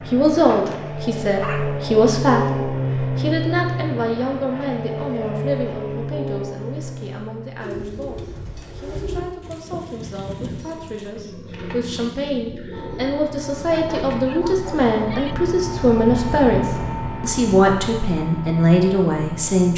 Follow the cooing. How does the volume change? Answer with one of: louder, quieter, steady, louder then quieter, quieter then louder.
steady.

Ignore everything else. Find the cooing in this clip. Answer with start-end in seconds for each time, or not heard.
7.6-14.2.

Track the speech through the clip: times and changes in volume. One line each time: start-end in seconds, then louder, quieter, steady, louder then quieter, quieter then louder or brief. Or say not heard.
0.1-19.7 quieter then louder.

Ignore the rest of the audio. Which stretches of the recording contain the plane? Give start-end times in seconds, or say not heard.
0.0-9.2, 12.7-19.7.